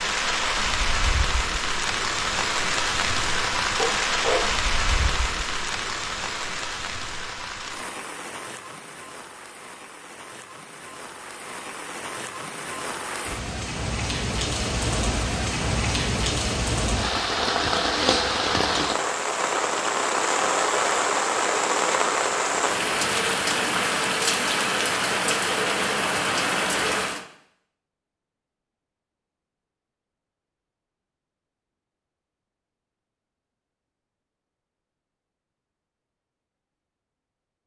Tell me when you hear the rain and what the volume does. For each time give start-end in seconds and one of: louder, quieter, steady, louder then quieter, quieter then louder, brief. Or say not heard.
0.0-27.2 quieter then louder.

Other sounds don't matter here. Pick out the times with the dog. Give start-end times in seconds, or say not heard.
3.8-5.2.